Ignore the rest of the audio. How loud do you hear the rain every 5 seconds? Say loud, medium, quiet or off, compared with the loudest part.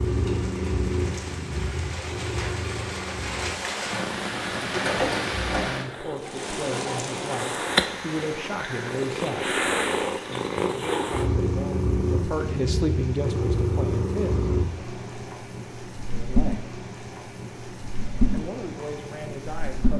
loud, loud, medium, medium.